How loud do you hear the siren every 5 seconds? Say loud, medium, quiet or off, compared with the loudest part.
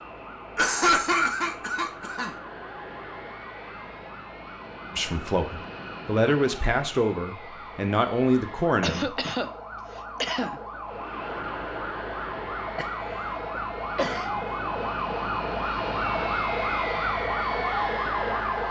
quiet, quiet, medium, loud.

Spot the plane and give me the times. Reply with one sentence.
The plane can be heard from 0.0 to 8.8 s and from 10.8 to 18.6 s.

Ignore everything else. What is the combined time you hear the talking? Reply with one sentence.
You can hear the talking for 4 seconds altogether.